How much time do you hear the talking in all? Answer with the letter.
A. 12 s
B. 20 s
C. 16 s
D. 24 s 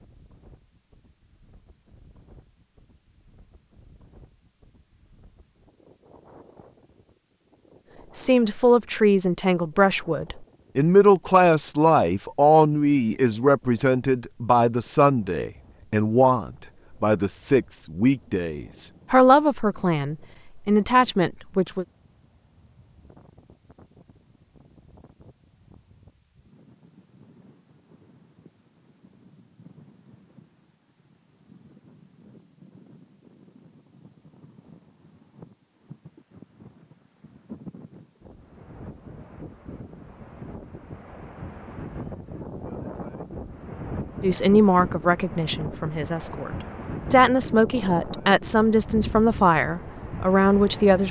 B.